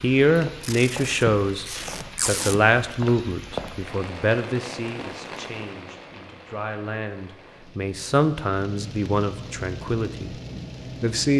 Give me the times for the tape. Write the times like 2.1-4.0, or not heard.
0.6-2.5.